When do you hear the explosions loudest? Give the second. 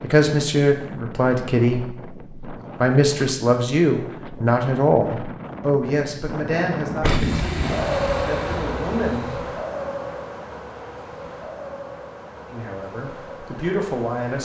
7 s.